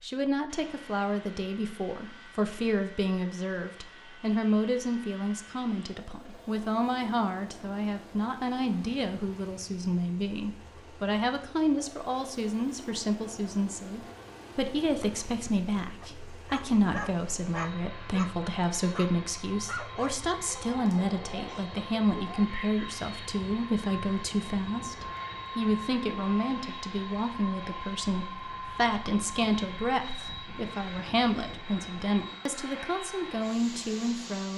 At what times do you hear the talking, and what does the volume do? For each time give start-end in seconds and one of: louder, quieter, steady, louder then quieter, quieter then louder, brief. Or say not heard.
0.0-34.5 steady.